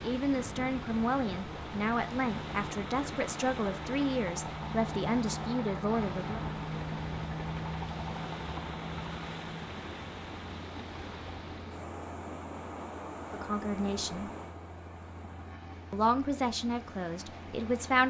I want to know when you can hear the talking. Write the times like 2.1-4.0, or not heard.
0.0-6.4, 13.3-14.3, 15.9-18.0.